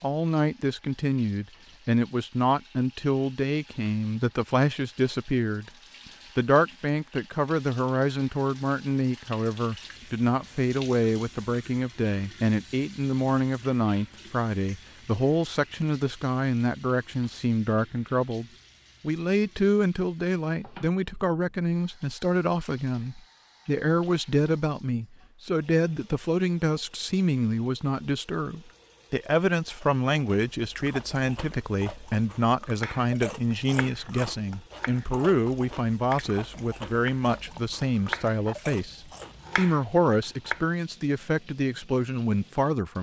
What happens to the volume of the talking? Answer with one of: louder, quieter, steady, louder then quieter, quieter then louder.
steady.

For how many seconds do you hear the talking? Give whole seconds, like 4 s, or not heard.
42 s.